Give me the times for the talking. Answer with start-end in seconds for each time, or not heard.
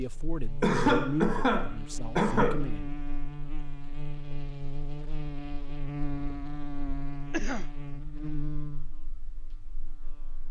0.0-3.0.